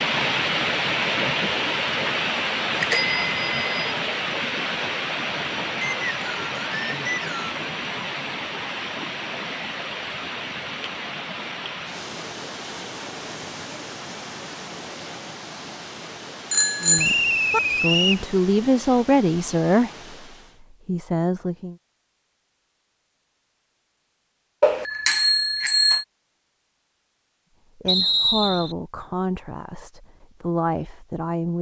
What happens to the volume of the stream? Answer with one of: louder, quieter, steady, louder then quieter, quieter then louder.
quieter.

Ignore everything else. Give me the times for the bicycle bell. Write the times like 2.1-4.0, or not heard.
2.8-3.9, 16.5-17.6, 24.6-26.1.